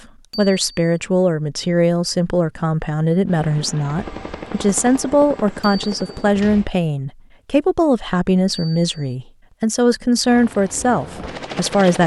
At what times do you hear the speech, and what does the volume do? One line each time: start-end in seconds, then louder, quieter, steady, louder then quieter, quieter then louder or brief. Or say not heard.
0.3-12.0 steady.